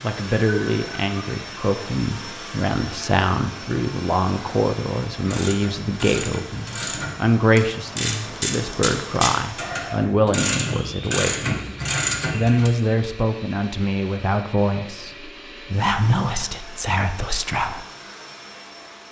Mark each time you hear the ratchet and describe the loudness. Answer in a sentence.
You can hear the ratchet from 5.2 to 12.7 s, getting louder.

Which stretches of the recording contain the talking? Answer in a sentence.
The talking can be heard from 0.0 to 11.6 s and from 12.3 to 17.9 s.